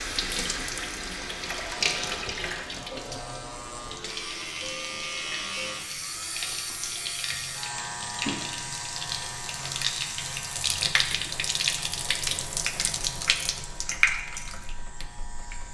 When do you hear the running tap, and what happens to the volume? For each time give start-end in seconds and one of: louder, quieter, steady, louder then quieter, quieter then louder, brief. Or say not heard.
0.0-15.7 quieter then louder.